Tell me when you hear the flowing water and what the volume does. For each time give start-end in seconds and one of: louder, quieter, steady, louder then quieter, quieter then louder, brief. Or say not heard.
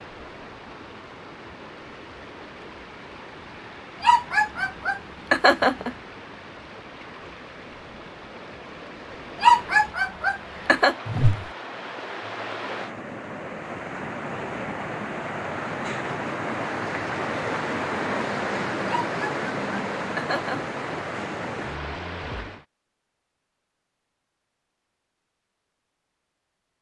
0.0-22.6 louder.